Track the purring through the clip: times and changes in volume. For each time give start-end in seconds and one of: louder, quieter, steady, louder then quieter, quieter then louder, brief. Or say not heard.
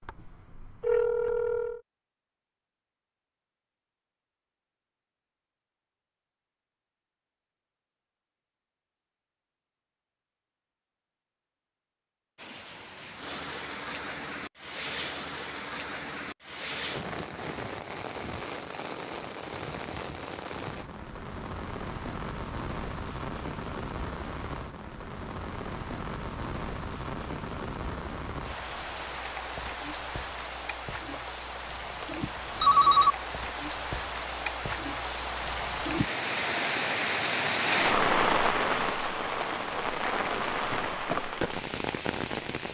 not heard.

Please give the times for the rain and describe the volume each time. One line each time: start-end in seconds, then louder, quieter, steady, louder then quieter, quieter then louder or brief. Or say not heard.
12.3-42.6 louder.